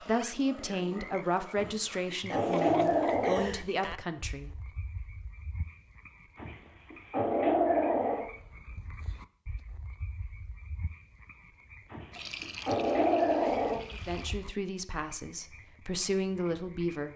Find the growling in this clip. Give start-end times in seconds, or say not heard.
1.6-3.5, 6.3-8.2, 11.9-13.8.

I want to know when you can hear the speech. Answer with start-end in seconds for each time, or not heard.
0.0-4.5, 13.9-17.1.